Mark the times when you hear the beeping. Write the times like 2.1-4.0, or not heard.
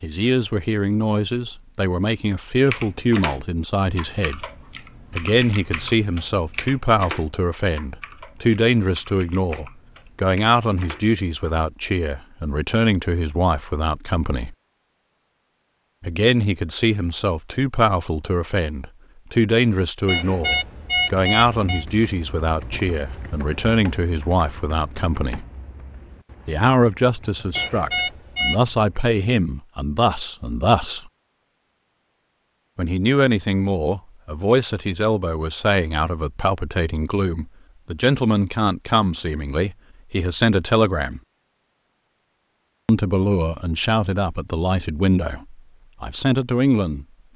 20.1-21.9, 27.6-28.6.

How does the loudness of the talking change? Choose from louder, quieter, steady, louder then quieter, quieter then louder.
steady.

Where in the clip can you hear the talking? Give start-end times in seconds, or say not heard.
0.0-4.4, 5.1-14.6, 16.0-25.4, 26.4-31.1, 32.8-41.2, 42.9-47.3.